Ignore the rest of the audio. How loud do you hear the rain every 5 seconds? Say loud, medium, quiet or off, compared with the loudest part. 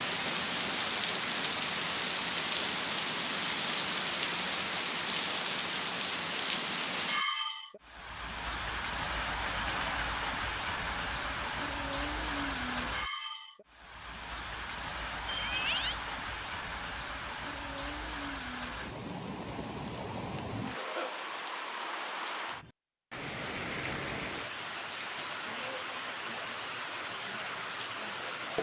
loud, loud, medium, medium, medium, medium.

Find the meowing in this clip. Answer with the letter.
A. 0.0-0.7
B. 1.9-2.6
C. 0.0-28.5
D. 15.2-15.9
D.